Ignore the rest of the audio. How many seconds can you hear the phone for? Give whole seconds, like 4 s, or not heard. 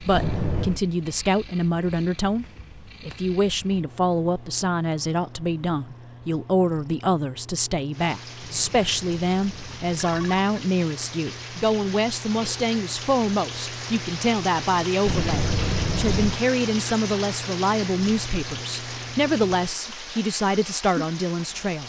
4 s.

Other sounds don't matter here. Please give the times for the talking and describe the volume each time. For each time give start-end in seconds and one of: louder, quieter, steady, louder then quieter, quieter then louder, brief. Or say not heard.
0.0-21.8 steady.